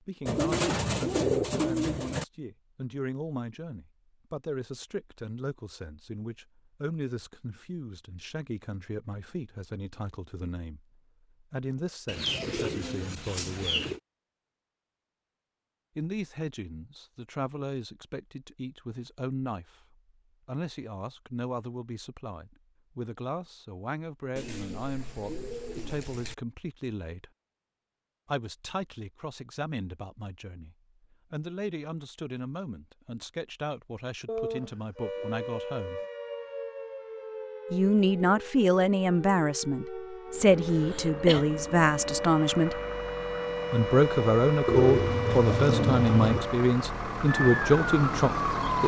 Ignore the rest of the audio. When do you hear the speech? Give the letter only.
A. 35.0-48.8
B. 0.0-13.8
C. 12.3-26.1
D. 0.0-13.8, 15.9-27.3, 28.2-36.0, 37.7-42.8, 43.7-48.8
D.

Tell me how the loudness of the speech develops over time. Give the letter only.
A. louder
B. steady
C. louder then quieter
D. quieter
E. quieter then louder
A.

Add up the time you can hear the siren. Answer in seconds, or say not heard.
14 s.